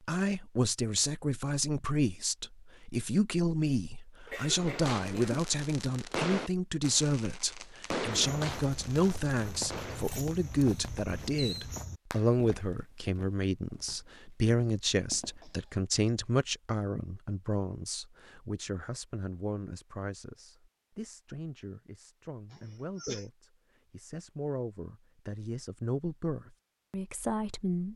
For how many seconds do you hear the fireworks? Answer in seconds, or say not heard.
8 s.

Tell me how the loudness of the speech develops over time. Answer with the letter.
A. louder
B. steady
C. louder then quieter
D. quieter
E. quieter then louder
D.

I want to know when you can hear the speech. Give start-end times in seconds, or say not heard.
0.1-27.9.